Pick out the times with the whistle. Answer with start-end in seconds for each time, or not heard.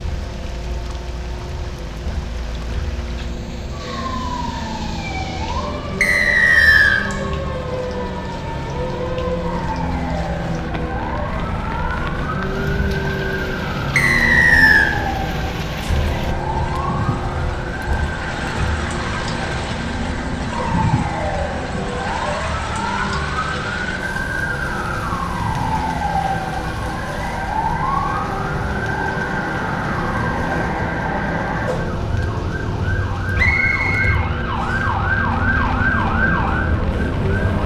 6.0-7.0, 13.9-14.9, 33.4-34.9.